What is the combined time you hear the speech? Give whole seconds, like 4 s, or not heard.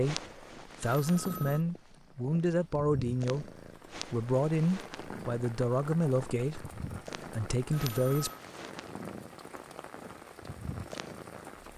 8 s.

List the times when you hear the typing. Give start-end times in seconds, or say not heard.
not heard.